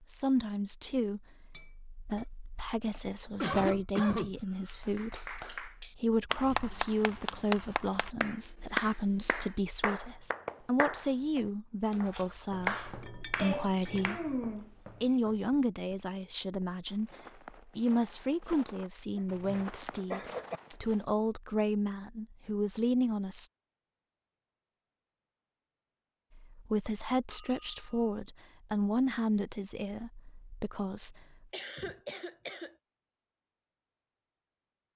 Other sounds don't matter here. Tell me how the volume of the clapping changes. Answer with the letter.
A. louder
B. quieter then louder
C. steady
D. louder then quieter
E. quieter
C.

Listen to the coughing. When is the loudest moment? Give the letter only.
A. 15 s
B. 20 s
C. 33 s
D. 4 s
D.